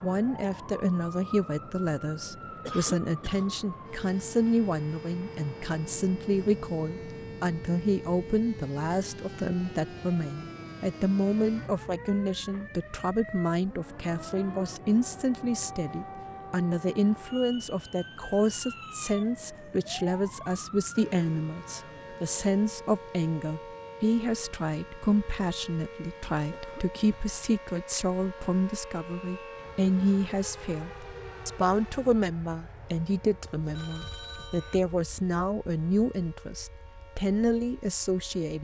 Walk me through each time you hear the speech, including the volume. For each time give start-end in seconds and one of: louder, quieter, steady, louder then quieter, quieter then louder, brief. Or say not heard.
0.0-38.5 steady.